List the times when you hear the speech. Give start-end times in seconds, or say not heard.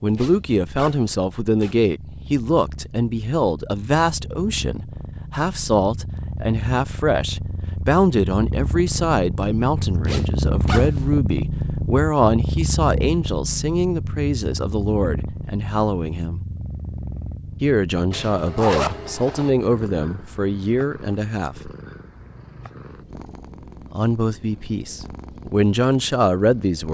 0.0-16.4, 17.6-21.7, 23.9-26.8.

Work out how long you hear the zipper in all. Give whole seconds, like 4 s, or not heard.
4 s.